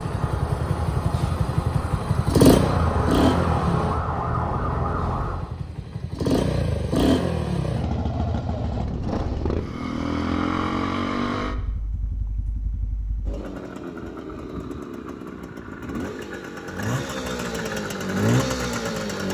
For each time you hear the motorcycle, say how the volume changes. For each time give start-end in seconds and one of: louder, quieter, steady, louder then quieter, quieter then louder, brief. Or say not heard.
0.0-19.2 quieter then louder.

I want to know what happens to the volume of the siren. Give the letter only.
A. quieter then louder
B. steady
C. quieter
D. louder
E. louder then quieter
D.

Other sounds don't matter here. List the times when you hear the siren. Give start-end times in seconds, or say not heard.
0.0-5.5.